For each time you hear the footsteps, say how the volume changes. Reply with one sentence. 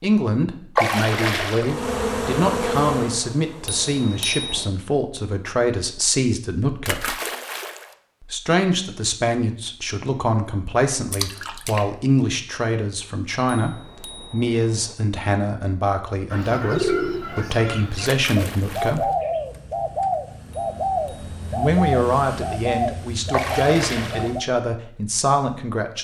The footsteps can't be heard in this clip.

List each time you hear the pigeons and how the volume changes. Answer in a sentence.
You can hear the pigeons from 16.3 to 24.4 s, at a steady volume.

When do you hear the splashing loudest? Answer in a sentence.
The loudest moment of the splashing is at 1 second.